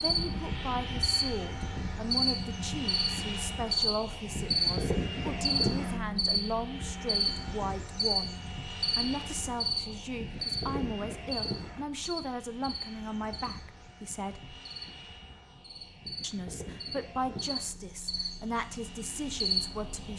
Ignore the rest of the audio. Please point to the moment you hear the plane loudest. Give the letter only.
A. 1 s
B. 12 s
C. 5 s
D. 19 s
C.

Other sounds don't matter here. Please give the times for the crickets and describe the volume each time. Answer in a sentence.
The crickets can be heard from 0.0 to 20.1 s, getting quieter then louder.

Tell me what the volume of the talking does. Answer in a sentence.
The volume of the talking stays about the same.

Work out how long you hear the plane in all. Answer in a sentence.
The plane can be heard for 20 seconds in total.